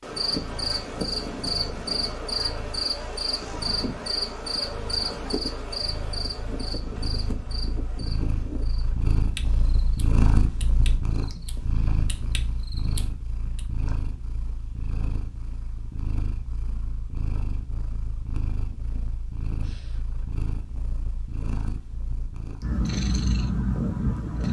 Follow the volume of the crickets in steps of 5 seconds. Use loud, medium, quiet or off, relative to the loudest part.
loud, medium, quiet, off, off.